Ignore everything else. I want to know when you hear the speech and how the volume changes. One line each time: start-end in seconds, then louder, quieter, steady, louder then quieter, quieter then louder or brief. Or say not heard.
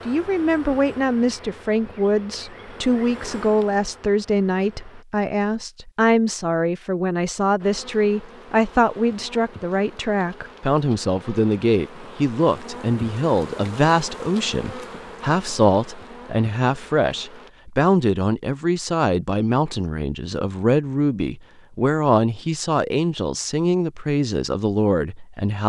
0.1-25.6 steady.